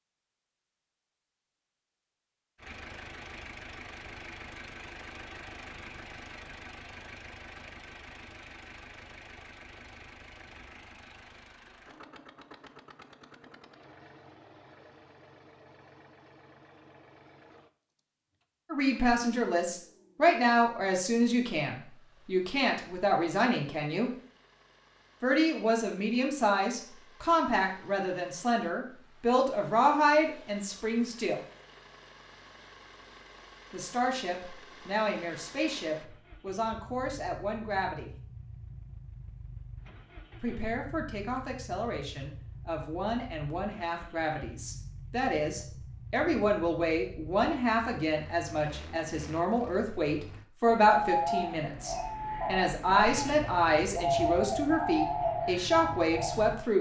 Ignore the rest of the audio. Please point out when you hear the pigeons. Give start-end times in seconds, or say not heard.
50.6-56.5.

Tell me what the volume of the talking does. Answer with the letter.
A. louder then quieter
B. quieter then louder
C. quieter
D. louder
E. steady
B.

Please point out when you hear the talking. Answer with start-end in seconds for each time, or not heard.
18.7-24.1, 25.2-31.4, 33.7-38.1, 40.4-56.7.